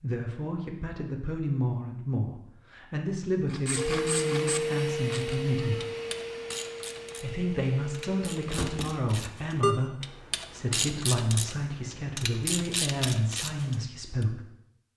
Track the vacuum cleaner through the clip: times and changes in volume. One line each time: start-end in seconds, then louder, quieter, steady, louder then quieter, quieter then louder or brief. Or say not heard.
3.8-9.1 quieter.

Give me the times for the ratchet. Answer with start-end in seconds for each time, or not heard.
3.5-14.2.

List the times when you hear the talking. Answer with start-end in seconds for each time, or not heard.
0.0-5.8, 7.2-14.4.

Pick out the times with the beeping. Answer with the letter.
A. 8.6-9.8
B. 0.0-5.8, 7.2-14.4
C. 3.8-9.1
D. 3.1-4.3
A.